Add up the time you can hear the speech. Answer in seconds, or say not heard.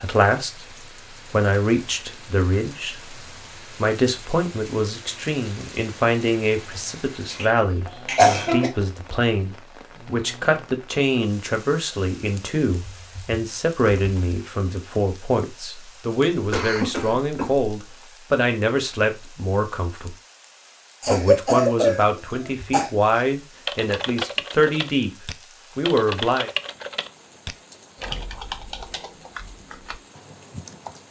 25 s.